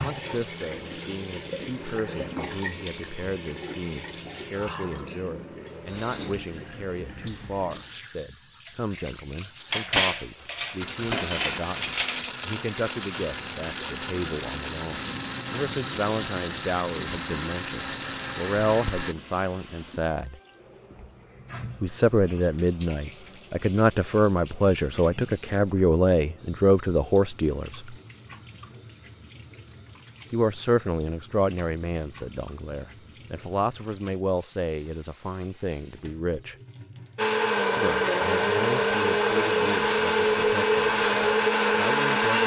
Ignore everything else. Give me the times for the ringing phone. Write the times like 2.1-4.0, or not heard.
not heard.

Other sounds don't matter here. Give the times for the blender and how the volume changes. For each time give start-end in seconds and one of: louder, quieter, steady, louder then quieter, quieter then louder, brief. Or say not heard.
10.8-19.1 steady
37.1-42.4 steady.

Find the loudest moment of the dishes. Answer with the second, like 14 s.
10 s.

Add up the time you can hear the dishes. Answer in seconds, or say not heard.
3 s.